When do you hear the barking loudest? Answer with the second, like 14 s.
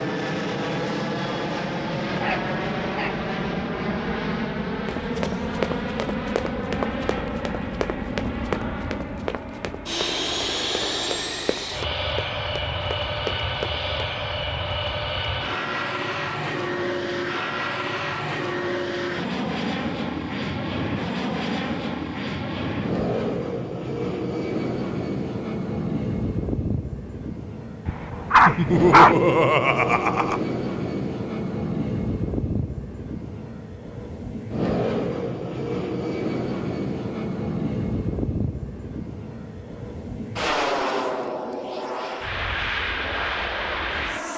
29 s.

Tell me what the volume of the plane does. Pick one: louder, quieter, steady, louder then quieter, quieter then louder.
steady.